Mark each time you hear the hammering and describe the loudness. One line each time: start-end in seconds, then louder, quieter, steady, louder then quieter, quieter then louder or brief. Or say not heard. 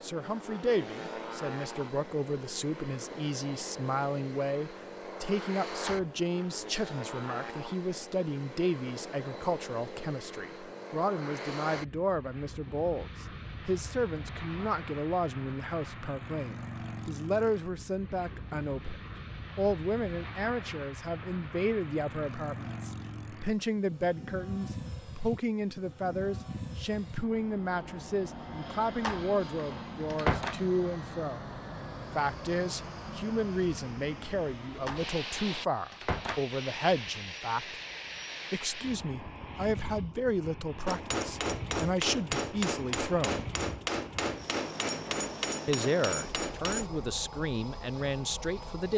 40.9-46.9 steady.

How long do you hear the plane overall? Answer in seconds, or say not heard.
49 s.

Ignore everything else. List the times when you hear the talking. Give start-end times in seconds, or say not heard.
0.0-31.4, 32.1-37.8, 38.5-43.5, 45.6-48.9.